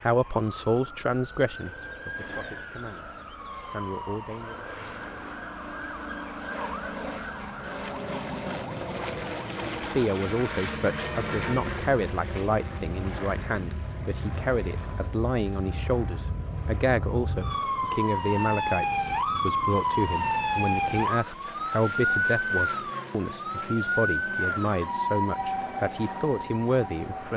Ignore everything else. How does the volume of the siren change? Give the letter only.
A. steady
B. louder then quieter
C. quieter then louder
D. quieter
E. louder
E.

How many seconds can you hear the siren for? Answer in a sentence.
The siren can be heard for 27 seconds in total.